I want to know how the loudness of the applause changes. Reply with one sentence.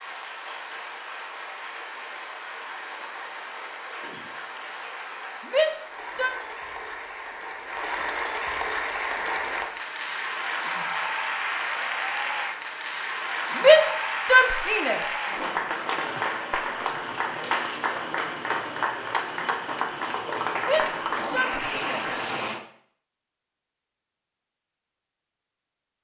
The loudness of the applause goes up.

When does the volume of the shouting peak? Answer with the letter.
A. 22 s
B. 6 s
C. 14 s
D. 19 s
C.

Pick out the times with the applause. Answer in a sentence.
The applause can be heard from 0.0 to 22.6 s.